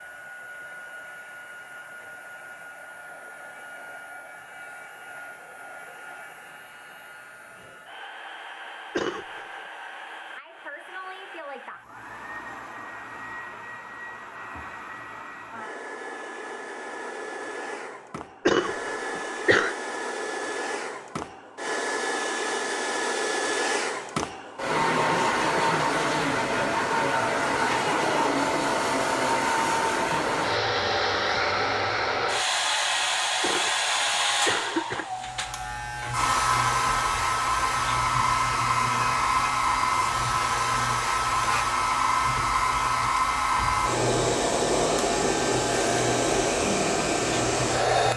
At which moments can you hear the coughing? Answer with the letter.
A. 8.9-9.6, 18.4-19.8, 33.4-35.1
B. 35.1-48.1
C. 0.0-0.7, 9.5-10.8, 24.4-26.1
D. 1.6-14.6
A.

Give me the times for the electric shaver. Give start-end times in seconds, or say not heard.
35.1-48.1.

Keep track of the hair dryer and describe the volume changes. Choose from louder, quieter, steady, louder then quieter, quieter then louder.
louder.